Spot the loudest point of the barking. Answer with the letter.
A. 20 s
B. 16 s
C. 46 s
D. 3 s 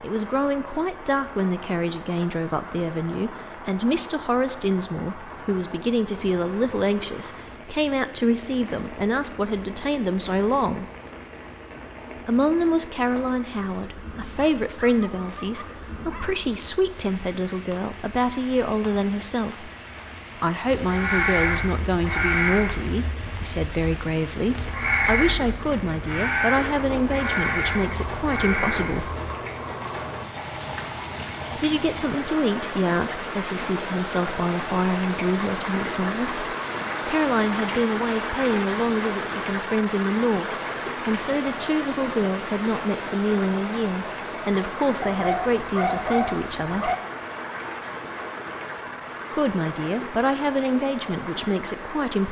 C.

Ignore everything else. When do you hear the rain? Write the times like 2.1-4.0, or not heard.
0.0-52.2.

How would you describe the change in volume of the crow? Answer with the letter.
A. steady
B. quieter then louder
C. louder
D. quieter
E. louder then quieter
B.